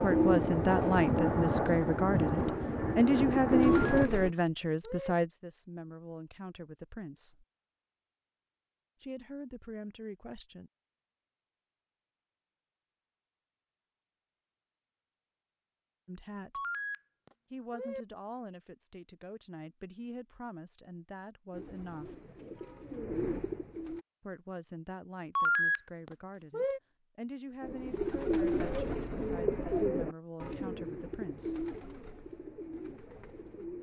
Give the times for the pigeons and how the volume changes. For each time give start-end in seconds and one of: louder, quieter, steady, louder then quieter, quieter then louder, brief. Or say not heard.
0.0-4.3 quieter then louder
21.5-24.1 brief
27.6-33.7 quieter.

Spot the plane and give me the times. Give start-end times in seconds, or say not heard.
0.0-4.1.